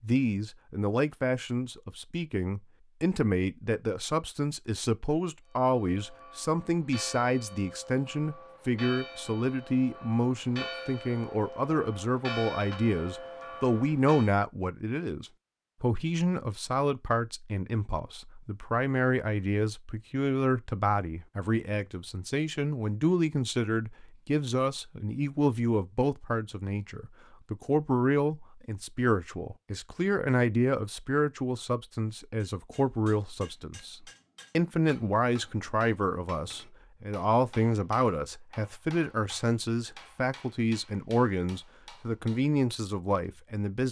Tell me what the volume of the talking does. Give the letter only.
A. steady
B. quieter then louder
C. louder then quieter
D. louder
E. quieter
A.